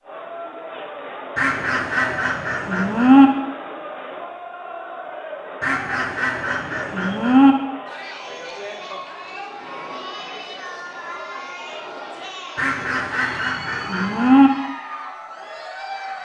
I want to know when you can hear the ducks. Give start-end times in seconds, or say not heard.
1.4-3.2, 5.6-7.5, 12.6-14.5.